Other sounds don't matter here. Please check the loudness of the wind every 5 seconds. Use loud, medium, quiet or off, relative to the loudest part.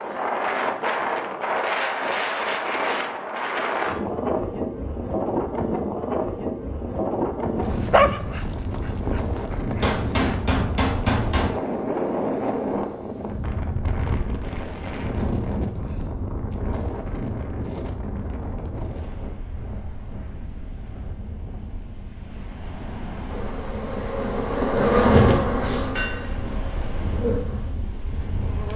loud, loud, loud, medium, quiet, medium.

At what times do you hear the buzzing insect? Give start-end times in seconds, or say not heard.
23.2-28.7.